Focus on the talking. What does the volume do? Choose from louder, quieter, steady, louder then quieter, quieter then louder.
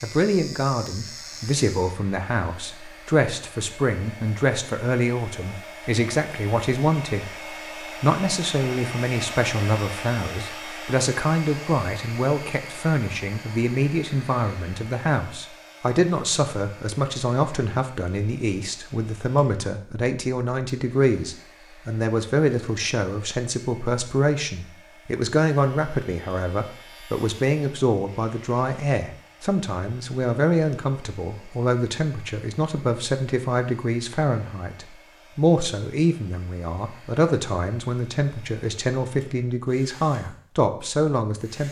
steady.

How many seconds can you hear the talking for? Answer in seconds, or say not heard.
41 s.